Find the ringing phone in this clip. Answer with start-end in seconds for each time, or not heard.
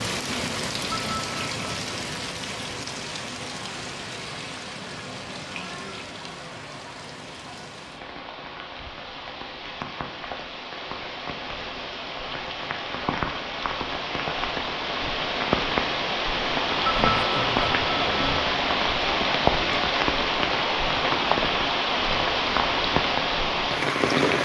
0.9-1.9, 16.9-18.4.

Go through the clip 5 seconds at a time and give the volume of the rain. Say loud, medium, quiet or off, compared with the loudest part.
medium, quiet, medium, loud, loud.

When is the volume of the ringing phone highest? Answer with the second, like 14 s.
17 s.